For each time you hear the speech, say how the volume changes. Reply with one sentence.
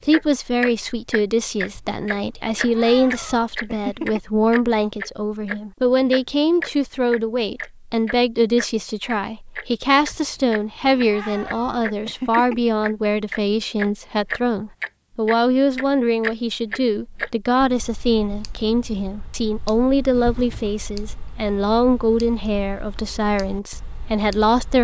You can hear the speech from 0.1 to 24.8 s, at a steady volume.